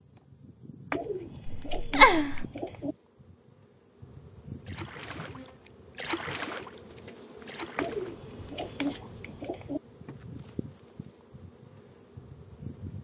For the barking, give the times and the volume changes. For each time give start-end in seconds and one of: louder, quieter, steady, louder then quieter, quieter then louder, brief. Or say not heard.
not heard.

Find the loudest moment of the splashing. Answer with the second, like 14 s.
6 s.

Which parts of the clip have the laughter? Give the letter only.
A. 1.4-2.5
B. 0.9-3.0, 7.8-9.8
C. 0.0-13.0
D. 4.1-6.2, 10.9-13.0
A.